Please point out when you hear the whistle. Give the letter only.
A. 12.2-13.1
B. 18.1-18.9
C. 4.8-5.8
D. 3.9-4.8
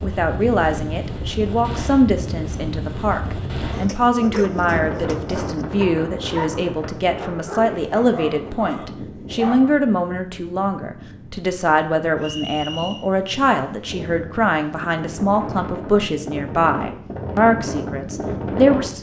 A.